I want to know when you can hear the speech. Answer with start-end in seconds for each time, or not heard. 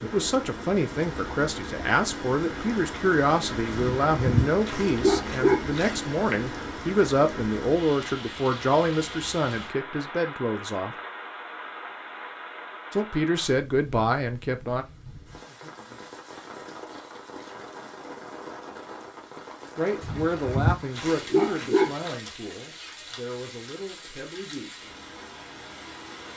0.0-10.9, 12.9-14.8, 19.8-24.9.